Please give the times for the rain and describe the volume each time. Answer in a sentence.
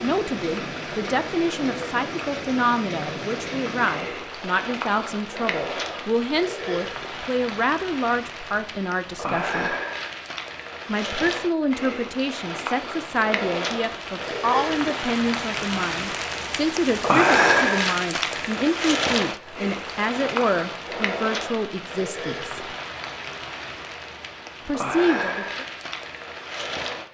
You can hear the rain from 0.0 to 27.0 s, getting louder then quieter.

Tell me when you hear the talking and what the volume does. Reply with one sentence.
The talking can be heard from 0.0 to 9.8 s, at a steady volume; from 10.8 to 22.6 s, at a steady volume; and briefly from 24.6 to 25.6 s.